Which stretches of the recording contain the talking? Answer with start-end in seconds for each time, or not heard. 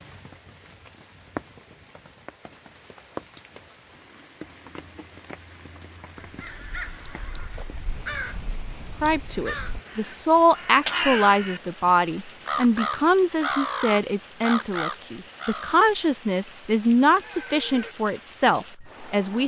9.0-19.4.